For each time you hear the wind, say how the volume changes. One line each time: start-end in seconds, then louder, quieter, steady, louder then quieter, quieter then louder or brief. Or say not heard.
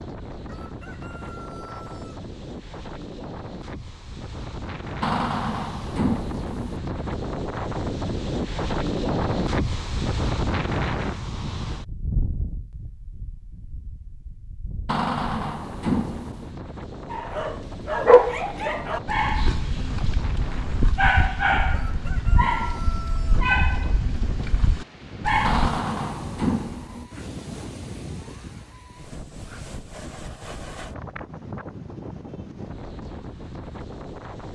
0.0-34.5 louder then quieter.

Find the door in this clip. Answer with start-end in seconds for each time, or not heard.
5.0-6.8, 14.8-16.6, 25.4-27.1.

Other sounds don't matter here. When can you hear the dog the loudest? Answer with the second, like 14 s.
18 s.